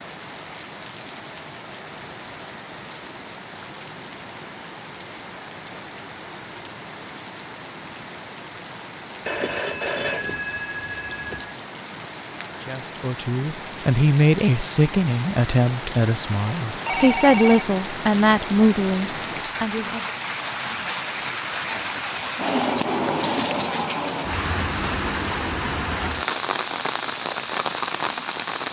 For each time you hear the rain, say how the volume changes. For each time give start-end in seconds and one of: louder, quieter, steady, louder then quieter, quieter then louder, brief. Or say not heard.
0.0-28.6 louder.